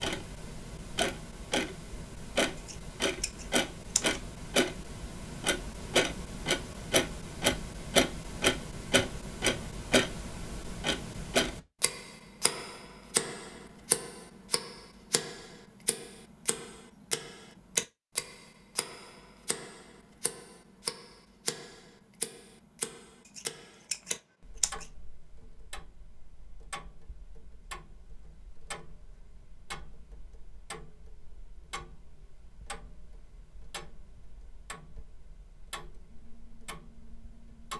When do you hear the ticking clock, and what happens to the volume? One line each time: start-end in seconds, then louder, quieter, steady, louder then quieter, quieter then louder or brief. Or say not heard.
0.0-37.7 quieter.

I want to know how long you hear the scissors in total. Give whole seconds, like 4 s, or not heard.
3 s.